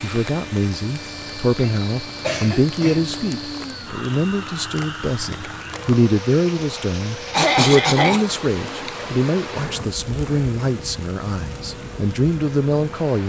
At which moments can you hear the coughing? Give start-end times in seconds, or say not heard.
1.6-3.3, 7.3-8.2.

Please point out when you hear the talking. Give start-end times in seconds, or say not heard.
0.0-13.2.